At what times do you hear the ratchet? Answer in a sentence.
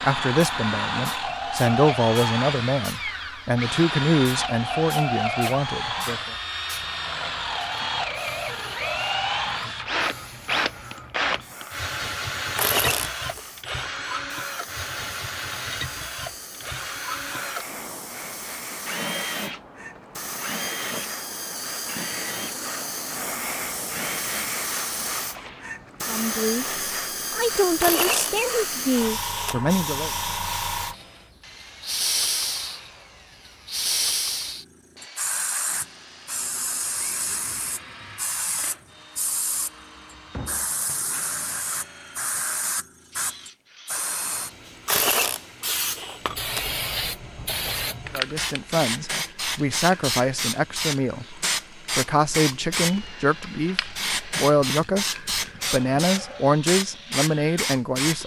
You can hear the ratchet from 12.6 to 14.1 s, from 27.8 to 29.6 s and from 44.9 to 46.8 s.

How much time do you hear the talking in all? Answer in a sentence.
The talking can be heard for 20 seconds in total.